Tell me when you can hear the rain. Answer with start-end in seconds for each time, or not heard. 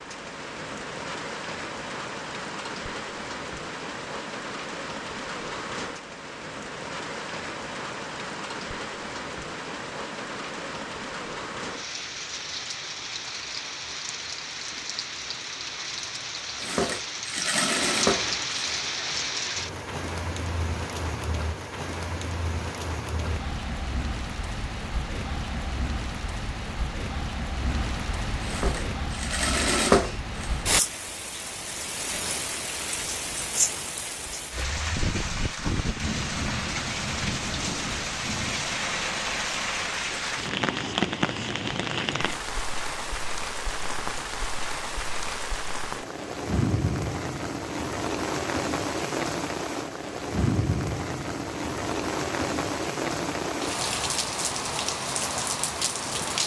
0.0-56.4.